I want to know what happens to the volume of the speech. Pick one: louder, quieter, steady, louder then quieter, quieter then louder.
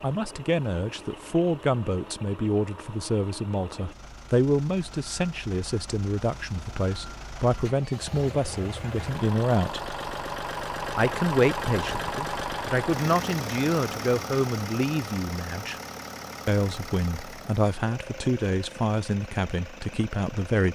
steady.